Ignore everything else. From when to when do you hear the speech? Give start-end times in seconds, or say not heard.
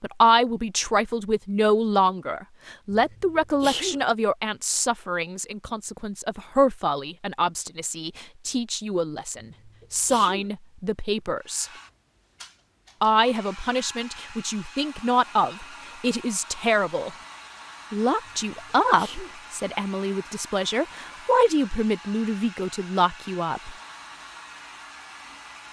0.0-11.7, 13.0-17.1, 17.9-23.8.